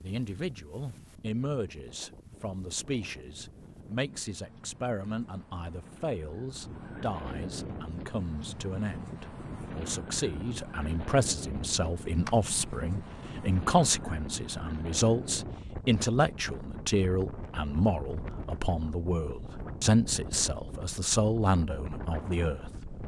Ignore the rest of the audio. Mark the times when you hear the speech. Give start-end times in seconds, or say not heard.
0.0-23.0.